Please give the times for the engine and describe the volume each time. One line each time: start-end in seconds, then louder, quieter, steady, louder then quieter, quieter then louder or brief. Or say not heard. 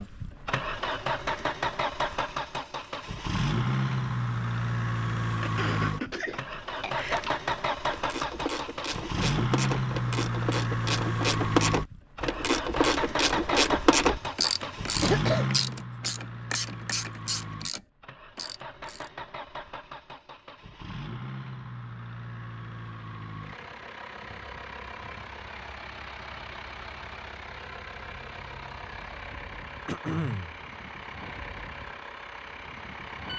0.0-33.3 quieter.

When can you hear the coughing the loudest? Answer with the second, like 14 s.
15 s.